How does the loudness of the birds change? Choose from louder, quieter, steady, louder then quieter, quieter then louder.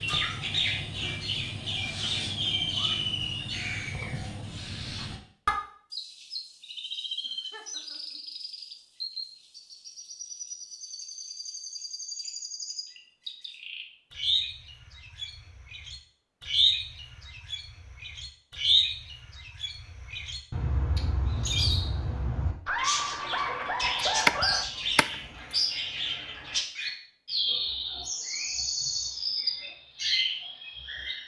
quieter then louder.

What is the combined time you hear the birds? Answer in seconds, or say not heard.
31 s.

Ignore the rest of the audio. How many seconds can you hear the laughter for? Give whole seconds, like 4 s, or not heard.
3 s.